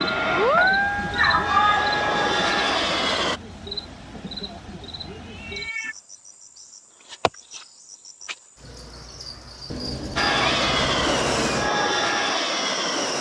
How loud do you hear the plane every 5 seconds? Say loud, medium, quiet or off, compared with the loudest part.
loud, off, loud.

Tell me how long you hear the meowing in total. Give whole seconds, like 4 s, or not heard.
4 s.